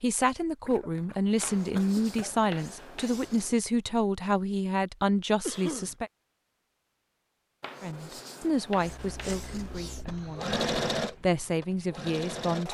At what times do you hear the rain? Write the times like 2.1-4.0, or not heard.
not heard.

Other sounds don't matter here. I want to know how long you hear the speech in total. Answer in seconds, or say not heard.
11 s.